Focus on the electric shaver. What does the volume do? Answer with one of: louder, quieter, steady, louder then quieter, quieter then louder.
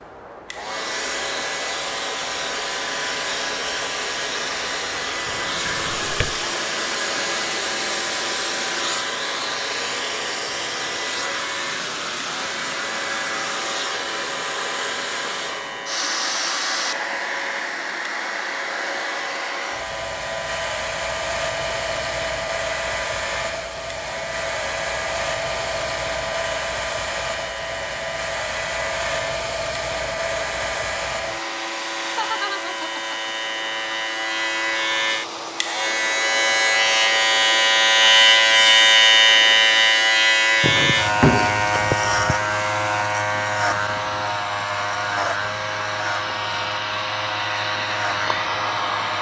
louder.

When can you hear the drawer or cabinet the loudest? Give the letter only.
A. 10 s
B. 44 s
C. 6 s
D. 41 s
D.